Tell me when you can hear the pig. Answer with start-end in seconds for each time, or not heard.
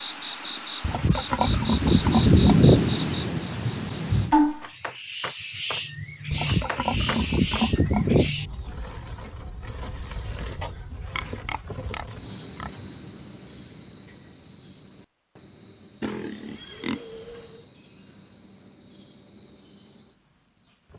0.8-2.9, 6.3-8.3, 10.6-12.8, 16.0-17.6.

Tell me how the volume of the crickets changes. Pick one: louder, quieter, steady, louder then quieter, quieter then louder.
quieter.